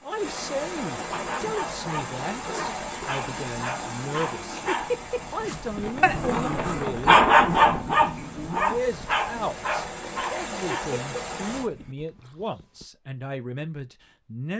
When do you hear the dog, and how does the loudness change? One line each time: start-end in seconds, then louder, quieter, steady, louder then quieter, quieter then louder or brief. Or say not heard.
1.1-12.8 louder then quieter.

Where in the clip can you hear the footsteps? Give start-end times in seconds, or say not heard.
not heard.